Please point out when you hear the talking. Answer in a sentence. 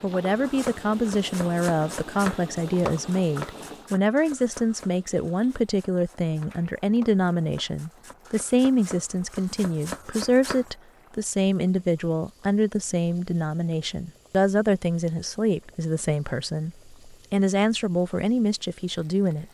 The talking can be heard from 0.0 to 19.4 s.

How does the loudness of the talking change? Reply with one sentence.
The volume of the talking stays about the same.